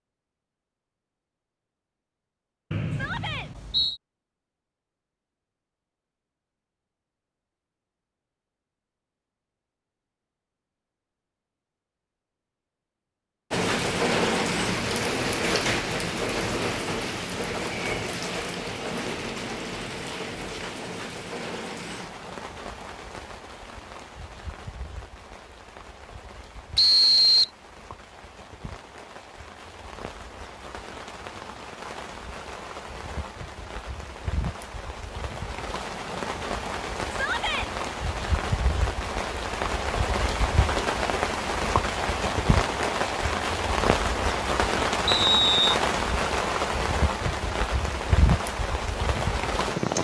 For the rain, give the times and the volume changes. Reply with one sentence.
The rain can be heard from 13.5 to 49.9 s, getting quieter then louder.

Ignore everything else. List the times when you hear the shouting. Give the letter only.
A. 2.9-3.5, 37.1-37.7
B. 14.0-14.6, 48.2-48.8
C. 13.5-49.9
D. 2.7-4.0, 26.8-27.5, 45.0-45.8
A.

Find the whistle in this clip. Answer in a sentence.
You can hear the whistle from 2.7 to 4.0 s, from 26.8 to 27.5 s and from 45.0 to 45.8 s.